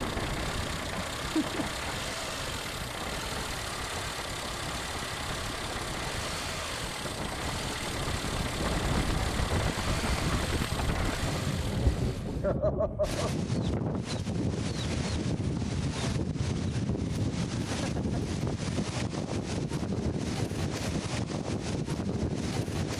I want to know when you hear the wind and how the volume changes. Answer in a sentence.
The wind can be heard from 0.0 to 22.9 s, getting louder.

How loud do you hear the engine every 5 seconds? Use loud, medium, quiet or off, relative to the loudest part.
loud, loud, loud, off, off.